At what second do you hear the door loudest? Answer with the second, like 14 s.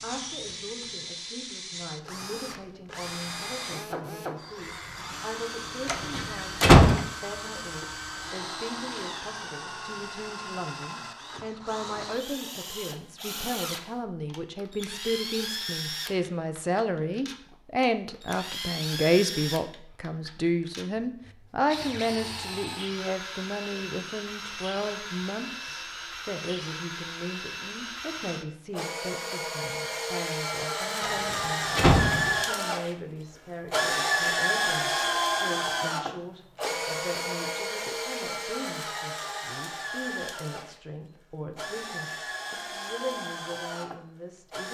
7 s.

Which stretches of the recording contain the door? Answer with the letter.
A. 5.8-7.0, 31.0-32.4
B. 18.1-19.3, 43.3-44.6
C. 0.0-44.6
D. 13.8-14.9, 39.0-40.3
A.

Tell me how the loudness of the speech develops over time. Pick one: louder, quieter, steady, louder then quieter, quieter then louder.
louder then quieter.